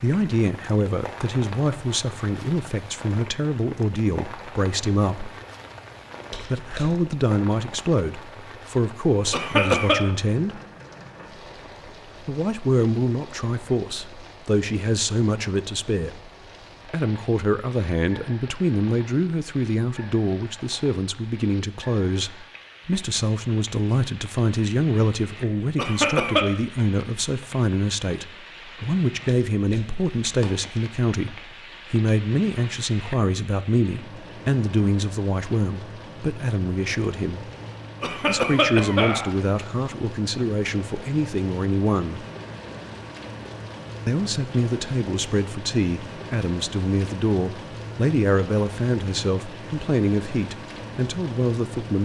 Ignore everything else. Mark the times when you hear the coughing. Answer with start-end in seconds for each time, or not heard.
9.3-10.0, 25.8-26.4, 38.0-39.3.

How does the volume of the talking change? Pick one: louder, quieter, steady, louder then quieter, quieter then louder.
steady.